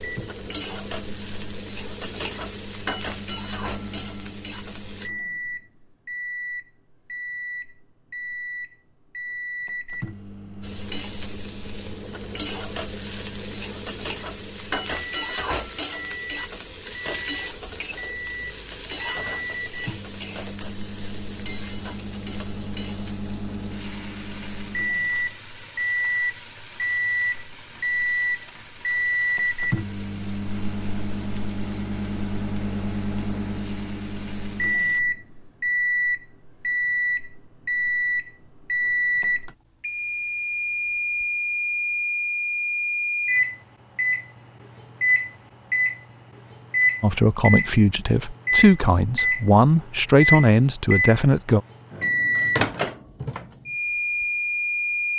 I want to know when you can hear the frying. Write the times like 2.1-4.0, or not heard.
0.0-5.1, 10.6-35.0.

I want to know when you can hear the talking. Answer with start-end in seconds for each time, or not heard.
47.0-51.6.